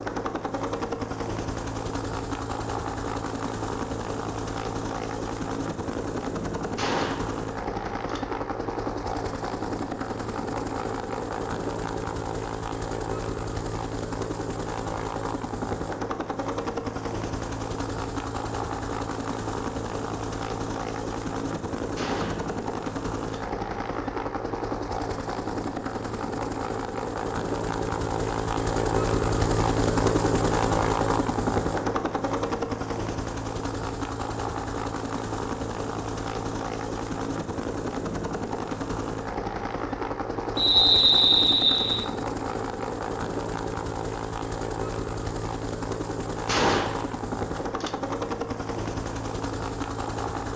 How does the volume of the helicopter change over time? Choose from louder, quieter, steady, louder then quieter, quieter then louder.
steady.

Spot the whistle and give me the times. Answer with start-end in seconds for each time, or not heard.
40.5-42.0.